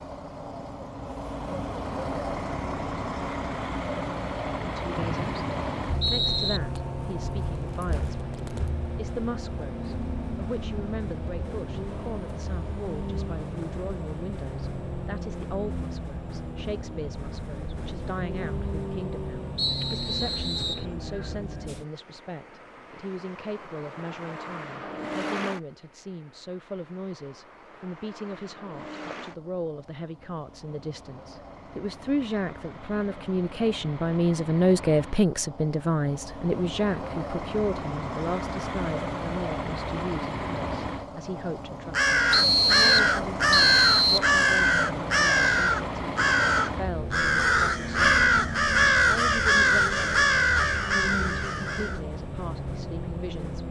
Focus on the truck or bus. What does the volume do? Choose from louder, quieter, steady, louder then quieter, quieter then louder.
quieter then louder.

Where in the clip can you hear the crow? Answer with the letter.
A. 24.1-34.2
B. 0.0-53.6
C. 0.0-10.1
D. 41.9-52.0
D.